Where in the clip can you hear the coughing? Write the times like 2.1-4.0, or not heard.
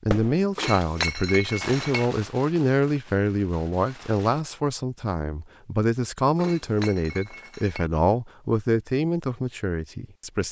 not heard.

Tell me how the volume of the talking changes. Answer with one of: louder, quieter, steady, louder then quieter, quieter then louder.
steady.